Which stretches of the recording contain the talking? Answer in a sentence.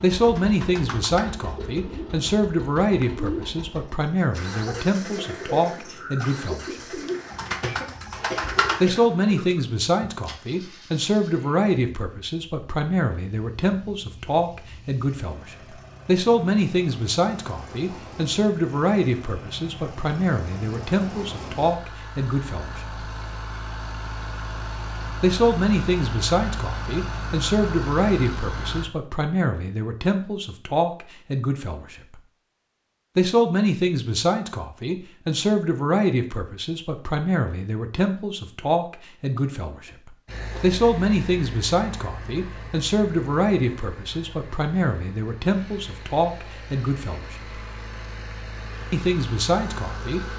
The talking can be heard from 0.0 to 7.0 s, from 8.8 to 22.8 s, from 25.2 to 32.2 s, from 33.1 to 47.4 s and from 48.9 to 50.2 s.